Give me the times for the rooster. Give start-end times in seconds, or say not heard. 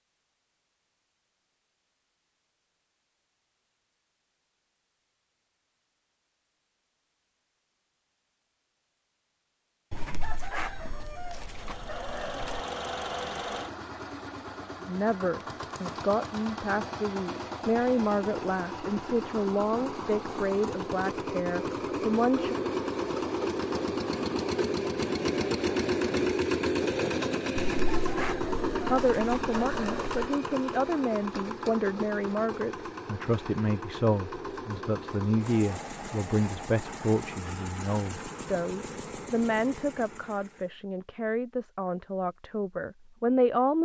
9.9-12.6, 27.6-30.2.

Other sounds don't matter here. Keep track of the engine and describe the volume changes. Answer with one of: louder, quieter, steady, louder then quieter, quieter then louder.
louder then quieter.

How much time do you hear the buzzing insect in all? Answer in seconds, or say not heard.
not heard.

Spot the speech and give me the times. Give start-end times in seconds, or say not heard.
14.8-22.6, 28.9-43.8.